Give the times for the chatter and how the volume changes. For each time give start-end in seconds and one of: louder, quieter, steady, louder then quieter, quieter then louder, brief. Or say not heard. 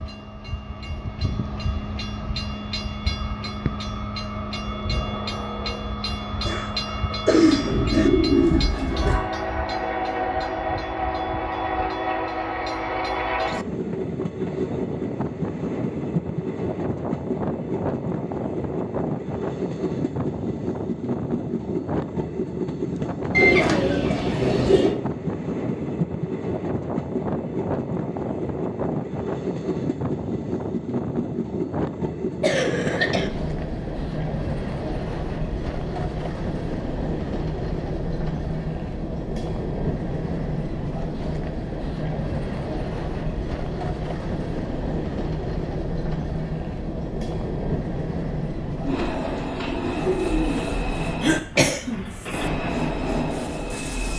not heard.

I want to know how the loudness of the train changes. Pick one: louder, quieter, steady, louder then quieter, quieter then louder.
steady.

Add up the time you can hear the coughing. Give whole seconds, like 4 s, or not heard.
4 s.